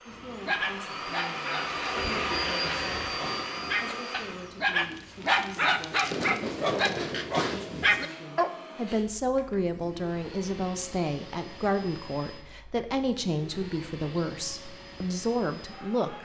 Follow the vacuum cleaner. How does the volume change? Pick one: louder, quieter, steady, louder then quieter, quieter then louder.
quieter.